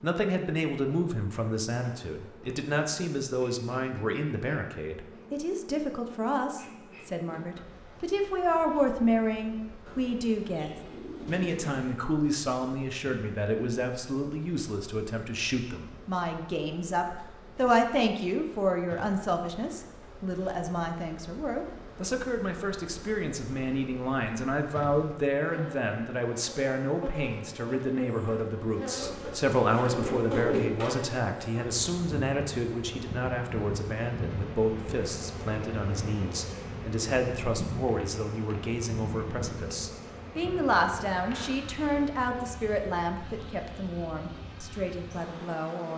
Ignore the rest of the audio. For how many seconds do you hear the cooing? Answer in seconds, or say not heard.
4 s.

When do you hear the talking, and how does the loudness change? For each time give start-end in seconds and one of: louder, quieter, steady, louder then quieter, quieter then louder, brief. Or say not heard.
0.0-45.9 steady.